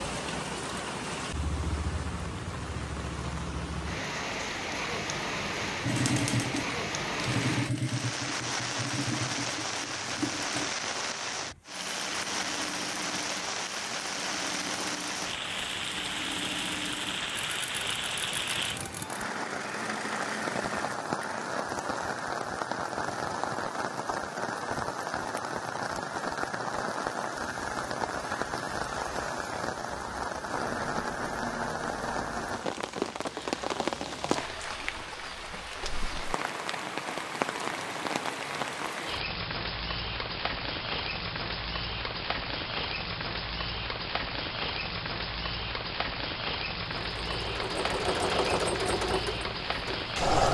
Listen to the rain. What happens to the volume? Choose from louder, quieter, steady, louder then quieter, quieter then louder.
steady.